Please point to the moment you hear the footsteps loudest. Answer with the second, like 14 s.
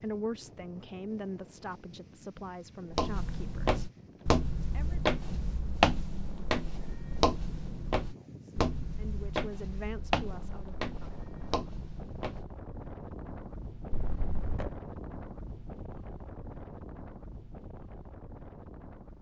6 s.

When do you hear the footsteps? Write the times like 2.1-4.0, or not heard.
2.9-12.4.